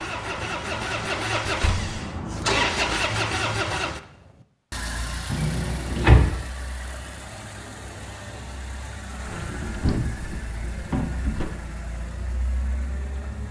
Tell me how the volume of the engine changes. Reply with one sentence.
The loudness of the engine goes down.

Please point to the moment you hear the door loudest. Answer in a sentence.
The loudest moment of the door is at 6 seconds.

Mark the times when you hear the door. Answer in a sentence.
The door can be heard from 1.4 to 1.9 s, from 5.3 to 6.3 s and from 9.2 to 11.5 s.